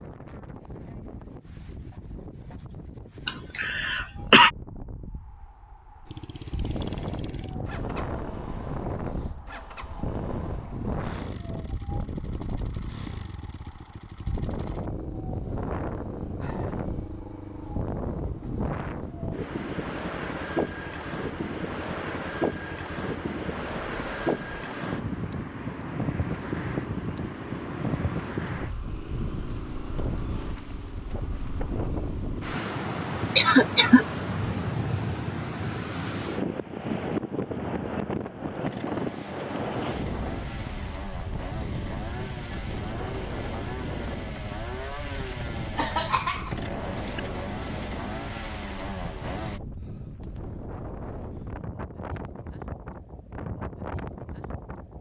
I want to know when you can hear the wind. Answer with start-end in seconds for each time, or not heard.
0.0-54.9.